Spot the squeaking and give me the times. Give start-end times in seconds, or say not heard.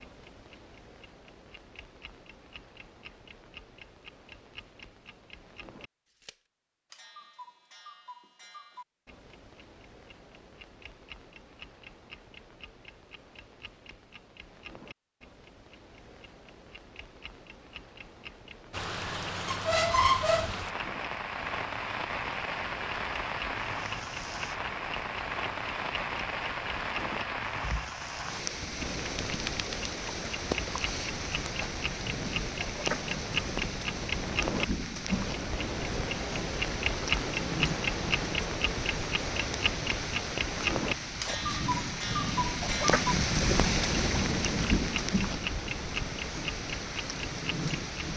19.4-20.5.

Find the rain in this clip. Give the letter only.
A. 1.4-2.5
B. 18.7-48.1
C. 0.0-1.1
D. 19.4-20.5
B.